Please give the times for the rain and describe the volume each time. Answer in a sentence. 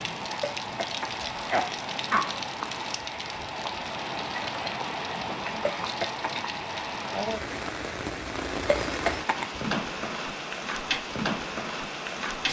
You can hear the rain from 0.0 to 12.4 s, at a steady volume.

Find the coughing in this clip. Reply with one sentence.
You can hear the coughing from 0.4 to 2.4 s, from 5.6 to 6.4 s and from 8.7 to 9.6 s.